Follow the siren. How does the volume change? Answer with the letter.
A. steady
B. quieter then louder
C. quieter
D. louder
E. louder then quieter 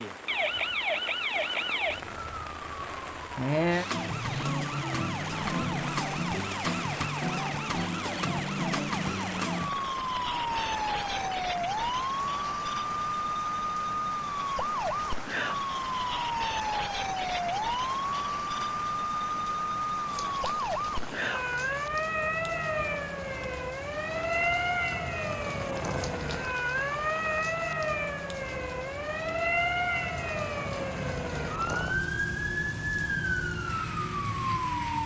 A.